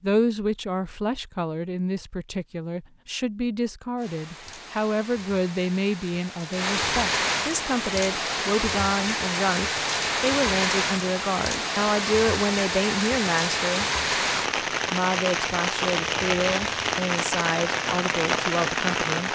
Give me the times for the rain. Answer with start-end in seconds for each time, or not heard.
4.0-19.2.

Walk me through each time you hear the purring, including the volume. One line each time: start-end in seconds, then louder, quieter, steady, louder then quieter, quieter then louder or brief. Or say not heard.
not heard.